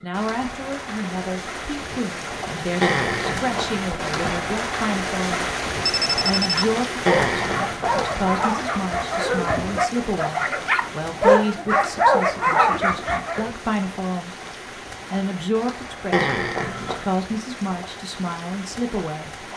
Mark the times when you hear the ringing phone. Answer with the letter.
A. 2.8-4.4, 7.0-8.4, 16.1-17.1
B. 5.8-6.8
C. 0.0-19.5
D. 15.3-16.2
B.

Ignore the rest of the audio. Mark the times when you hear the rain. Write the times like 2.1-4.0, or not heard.
0.0-19.5.